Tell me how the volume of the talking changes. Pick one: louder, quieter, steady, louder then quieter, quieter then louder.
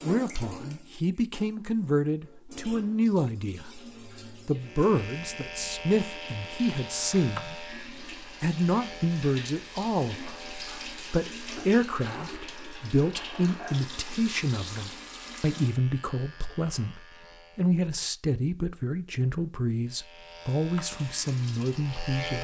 steady.